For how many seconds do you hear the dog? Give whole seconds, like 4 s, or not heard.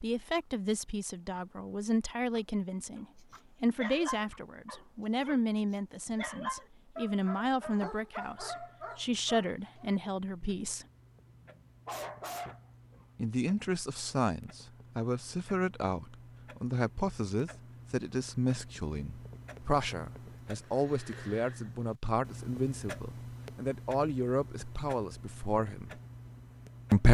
9 s.